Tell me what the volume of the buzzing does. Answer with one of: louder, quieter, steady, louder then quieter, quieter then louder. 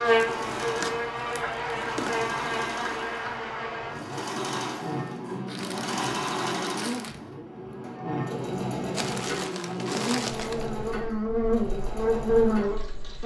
quieter then louder.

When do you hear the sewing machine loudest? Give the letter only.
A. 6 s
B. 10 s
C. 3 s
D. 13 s
A.